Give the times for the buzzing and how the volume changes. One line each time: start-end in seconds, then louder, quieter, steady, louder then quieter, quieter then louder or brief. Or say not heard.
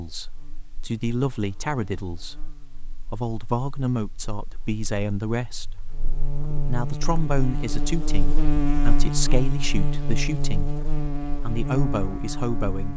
0.1-12.9 quieter then louder.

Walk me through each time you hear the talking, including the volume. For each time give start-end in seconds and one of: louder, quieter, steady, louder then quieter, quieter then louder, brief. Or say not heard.
0.0-12.9 steady.